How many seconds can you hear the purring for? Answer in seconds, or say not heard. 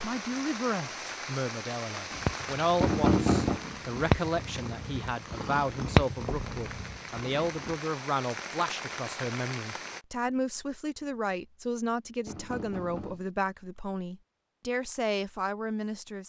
6 s.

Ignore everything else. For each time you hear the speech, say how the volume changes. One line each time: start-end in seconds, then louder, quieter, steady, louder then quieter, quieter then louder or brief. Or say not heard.
0.0-16.2 steady.